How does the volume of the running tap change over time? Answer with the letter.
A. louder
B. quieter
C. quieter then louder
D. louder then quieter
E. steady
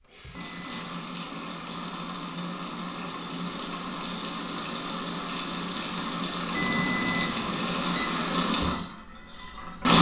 A.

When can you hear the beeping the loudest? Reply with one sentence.
The volume of the beeping peaks at 7 seconds.